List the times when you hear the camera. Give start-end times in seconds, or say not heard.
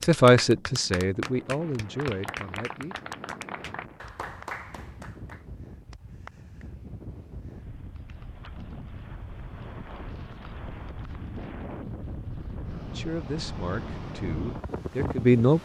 not heard.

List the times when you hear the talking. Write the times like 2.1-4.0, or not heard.
0.0-3.0, 12.9-15.5.